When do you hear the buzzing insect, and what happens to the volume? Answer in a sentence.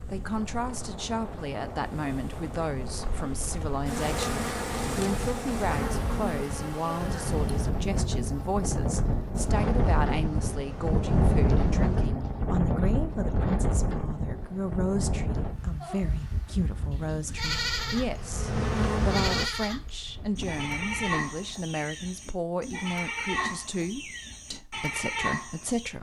You can hear the buzzing insect from 0.0 to 12.1 s, getting louder then quieter; and briefly from 17.4 to 19.5 s.